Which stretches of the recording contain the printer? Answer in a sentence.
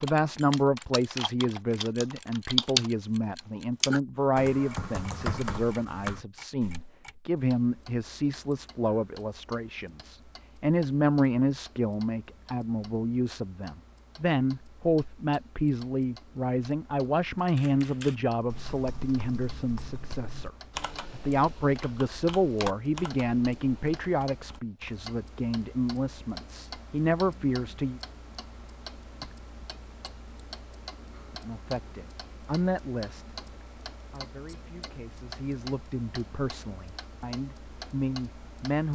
The printer can't be heard in this clip.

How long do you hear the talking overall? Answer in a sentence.
The talking can be heard for 35 seconds in total.